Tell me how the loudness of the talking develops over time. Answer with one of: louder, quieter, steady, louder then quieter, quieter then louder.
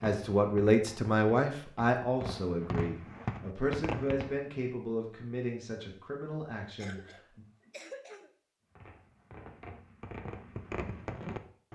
quieter.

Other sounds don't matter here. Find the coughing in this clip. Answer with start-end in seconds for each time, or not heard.
6.8-8.3.